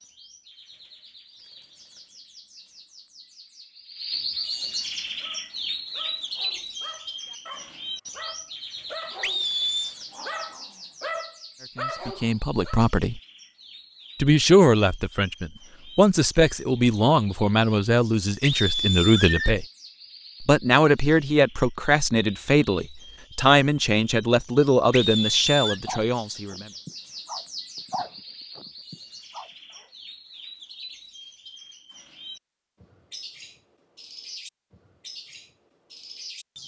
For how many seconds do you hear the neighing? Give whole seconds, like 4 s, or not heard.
3 s.